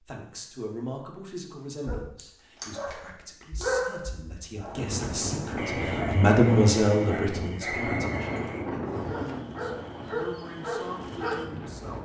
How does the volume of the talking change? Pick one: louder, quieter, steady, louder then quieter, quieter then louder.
louder then quieter.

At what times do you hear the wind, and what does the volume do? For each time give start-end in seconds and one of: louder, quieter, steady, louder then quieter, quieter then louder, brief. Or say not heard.
4.7-12.0 quieter.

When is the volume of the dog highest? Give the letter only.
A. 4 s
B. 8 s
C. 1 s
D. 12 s
A.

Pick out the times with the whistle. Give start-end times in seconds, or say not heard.
7.7-9.2.